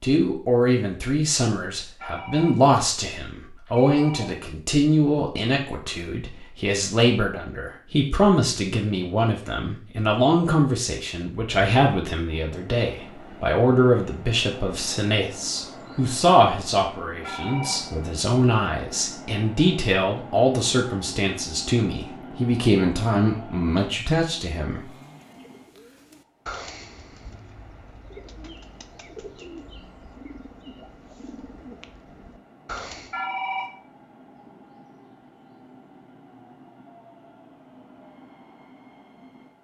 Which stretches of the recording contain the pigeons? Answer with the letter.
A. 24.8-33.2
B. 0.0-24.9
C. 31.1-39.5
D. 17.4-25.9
A.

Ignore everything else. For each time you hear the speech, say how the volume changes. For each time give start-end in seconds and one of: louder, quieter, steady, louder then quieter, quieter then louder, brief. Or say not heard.
0.0-24.9 steady.